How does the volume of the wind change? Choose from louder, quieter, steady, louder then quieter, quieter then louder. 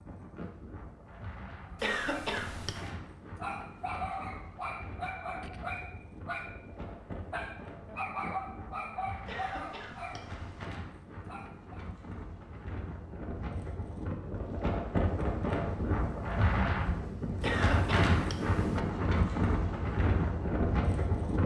louder.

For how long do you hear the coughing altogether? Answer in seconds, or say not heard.
4 s.